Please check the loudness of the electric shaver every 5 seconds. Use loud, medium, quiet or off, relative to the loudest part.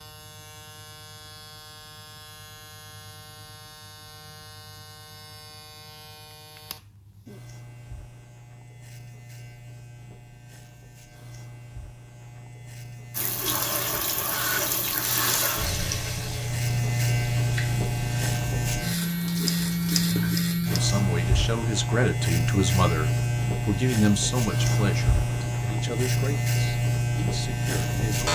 quiet, quiet, quiet, loud, loud, loud.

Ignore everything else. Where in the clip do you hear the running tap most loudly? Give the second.
15 s.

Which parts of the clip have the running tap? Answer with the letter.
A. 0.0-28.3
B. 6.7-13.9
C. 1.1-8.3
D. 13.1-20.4
D.